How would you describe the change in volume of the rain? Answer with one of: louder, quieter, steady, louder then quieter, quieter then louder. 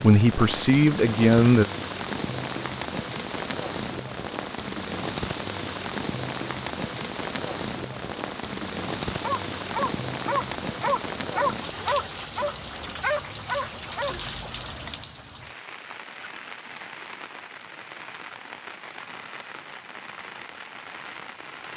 quieter.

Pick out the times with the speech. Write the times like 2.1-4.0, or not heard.
0.0-1.6.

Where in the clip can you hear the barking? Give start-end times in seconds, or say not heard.
9.2-14.2.